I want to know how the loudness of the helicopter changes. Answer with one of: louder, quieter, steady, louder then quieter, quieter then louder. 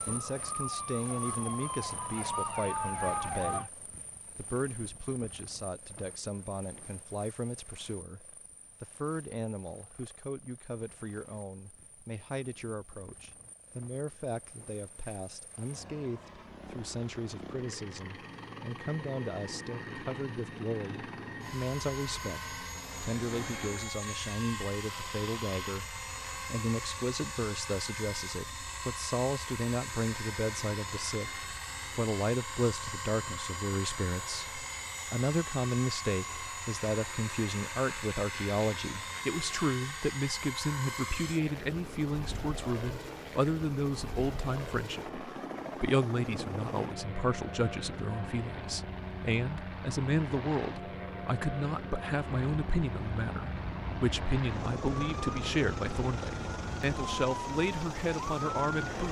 louder.